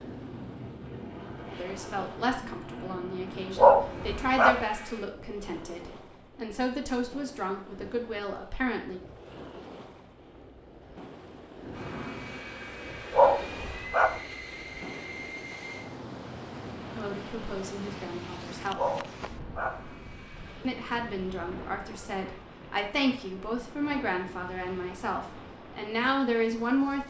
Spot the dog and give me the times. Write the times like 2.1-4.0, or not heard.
3.5-4.7, 13.1-14.2, 18.8-19.8.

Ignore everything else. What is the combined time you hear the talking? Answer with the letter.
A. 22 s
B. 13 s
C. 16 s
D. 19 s
C.